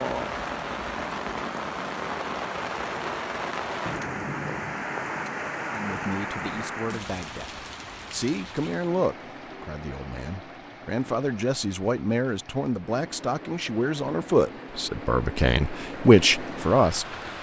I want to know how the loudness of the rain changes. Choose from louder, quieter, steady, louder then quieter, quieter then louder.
quieter then louder.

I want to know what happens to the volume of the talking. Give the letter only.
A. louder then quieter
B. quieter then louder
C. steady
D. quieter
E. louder
E.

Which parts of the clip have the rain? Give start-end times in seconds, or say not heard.
0.0-17.3.